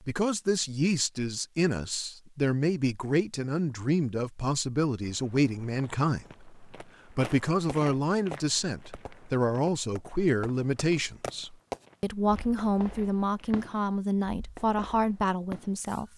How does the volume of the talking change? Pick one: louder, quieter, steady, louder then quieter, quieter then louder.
steady.